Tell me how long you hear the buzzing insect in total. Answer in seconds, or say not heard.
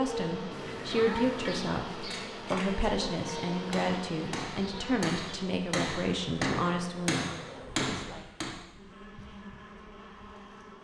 11 s.